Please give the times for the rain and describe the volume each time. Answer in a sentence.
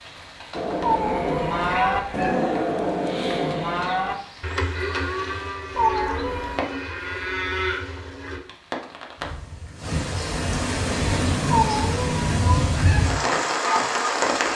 You can hear the rain from 0.0 to 14.5 s, getting louder.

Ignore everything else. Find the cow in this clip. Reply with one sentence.
The cow can be heard from 0.5 to 8.4 s.